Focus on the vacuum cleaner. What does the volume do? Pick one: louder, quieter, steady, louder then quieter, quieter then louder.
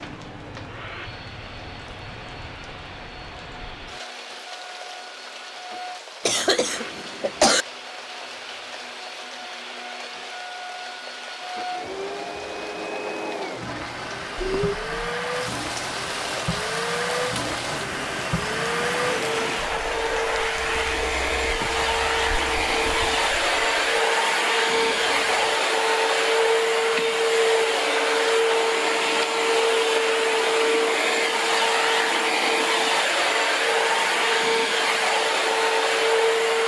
louder.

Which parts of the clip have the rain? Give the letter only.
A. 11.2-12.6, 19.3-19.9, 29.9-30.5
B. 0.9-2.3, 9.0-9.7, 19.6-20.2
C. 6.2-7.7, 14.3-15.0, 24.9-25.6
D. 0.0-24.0
D.